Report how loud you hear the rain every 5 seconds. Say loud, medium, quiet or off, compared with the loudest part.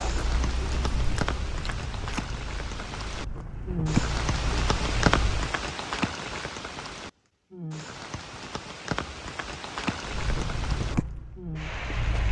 loud, loud, medium.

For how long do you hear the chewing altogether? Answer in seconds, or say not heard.
8 s.